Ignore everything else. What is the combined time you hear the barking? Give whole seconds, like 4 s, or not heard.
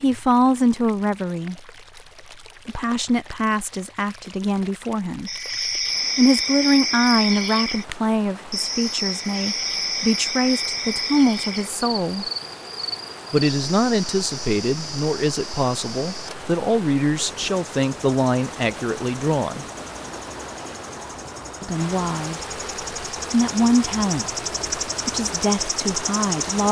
not heard.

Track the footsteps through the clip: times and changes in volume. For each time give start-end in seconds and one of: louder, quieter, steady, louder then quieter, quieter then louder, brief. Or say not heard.
not heard.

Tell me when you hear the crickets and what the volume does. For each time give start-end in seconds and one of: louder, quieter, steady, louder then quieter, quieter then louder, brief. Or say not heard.
5.2-26.6 quieter then louder.